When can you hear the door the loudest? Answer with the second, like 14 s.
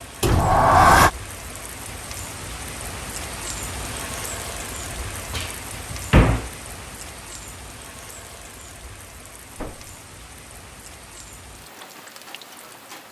1 s.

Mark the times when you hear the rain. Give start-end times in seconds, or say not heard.
0.0-13.0.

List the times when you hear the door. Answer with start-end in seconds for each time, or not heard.
0.2-1.1, 5.3-6.5, 9.5-9.9.